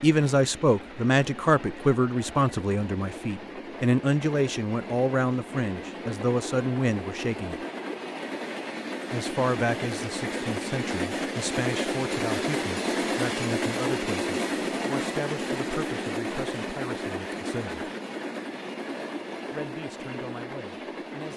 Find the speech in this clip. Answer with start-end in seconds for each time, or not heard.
0.0-7.6, 9.1-17.9, 19.5-21.3.